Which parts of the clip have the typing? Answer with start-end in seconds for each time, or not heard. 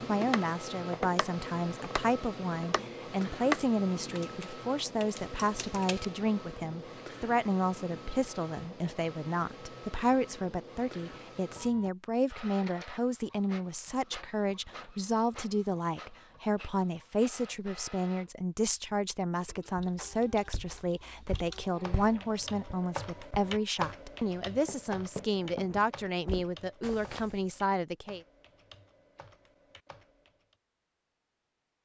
0.0-6.0, 19.6-30.6.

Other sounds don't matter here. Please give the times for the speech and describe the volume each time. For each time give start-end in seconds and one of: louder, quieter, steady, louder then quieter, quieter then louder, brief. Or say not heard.
0.1-28.2 steady.